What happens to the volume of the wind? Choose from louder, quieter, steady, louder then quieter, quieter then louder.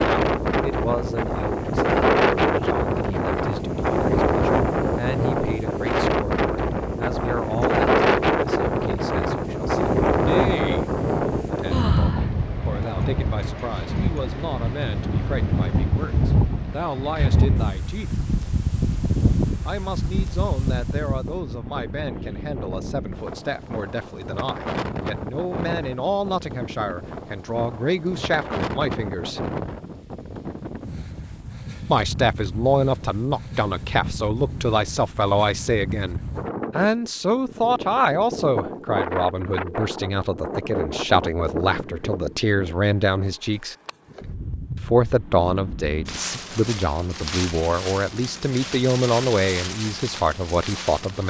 quieter.